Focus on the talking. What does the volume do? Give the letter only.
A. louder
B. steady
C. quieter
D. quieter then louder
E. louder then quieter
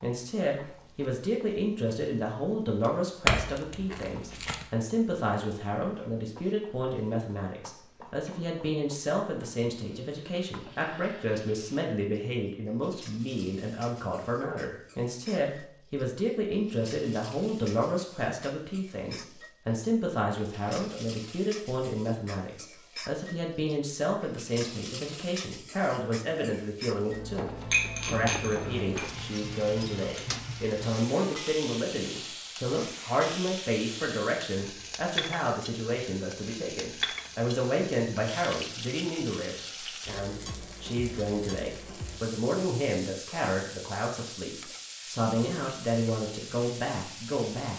B.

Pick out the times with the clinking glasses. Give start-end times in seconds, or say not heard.
3.2-4.7, 27.7-30.2.